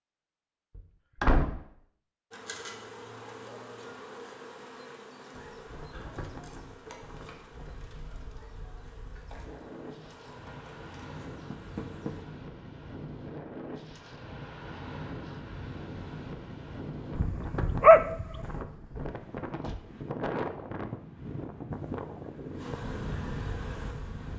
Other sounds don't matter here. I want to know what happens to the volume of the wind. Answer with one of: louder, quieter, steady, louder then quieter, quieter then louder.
louder.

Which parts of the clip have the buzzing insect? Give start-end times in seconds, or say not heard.
2.3-12.2, 21.7-24.3.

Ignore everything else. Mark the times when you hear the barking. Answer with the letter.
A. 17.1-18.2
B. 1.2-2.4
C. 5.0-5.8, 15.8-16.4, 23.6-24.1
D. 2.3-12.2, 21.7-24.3
A.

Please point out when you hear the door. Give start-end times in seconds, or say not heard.
0.8-1.6, 11.5-12.2, 19.4-19.9.